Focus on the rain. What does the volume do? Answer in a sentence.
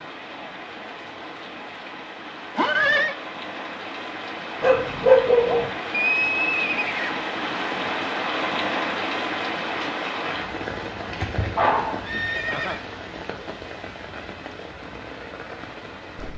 The loudness of the rain goes up, then down.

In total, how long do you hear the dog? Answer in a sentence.
The dog can be heard for 2 seconds in total.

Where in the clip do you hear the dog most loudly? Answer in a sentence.
The volume of the dog peaks at 5 seconds.